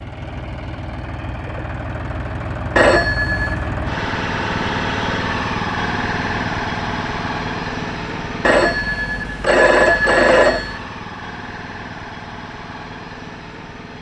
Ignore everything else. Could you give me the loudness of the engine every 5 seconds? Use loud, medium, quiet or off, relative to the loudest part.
loud, loud, medium.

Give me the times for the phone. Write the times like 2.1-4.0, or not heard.
2.8-3.6, 8.4-10.8.